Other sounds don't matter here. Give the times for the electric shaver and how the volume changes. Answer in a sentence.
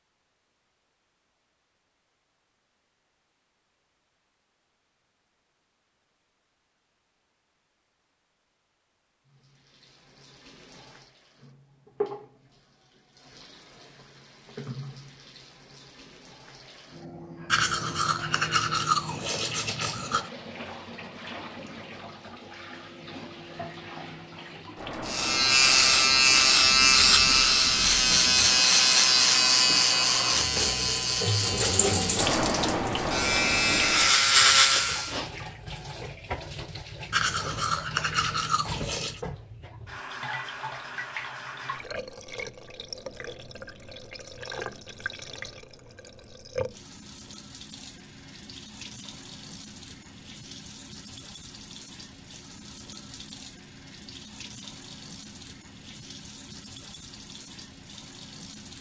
The electric shaver can be heard from 25.1 to 35.1 s, getting quieter then louder.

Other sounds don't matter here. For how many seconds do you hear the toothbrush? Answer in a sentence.
You can hear the toothbrush for 5 seconds altogether.